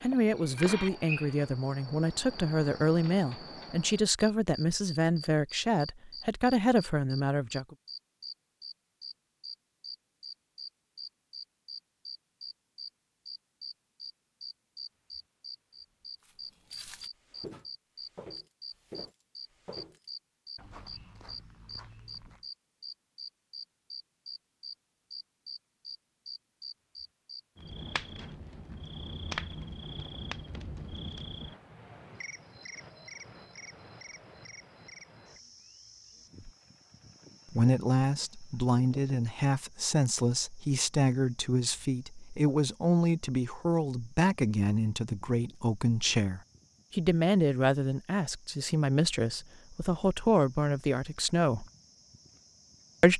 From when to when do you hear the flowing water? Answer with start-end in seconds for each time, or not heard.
not heard.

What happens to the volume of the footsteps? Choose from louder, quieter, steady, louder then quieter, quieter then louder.
quieter.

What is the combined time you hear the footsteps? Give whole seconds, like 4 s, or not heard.
6 s.